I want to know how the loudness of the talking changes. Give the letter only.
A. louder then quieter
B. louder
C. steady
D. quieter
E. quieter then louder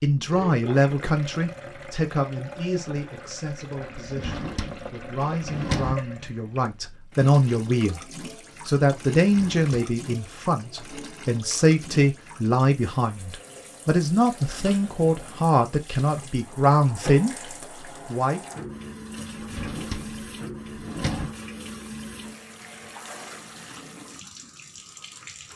E.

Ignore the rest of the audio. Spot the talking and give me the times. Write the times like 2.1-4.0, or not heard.
0.0-8.0, 8.7-18.4.